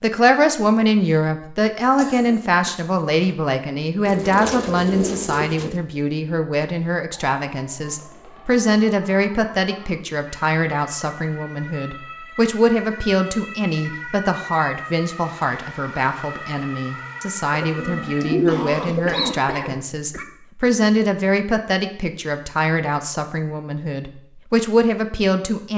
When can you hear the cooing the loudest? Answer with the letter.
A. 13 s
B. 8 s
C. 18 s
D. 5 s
C.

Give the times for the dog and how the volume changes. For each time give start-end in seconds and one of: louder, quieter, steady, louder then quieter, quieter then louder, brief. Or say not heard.
not heard.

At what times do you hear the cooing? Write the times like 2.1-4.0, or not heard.
4.0-5.8, 17.5-19.4.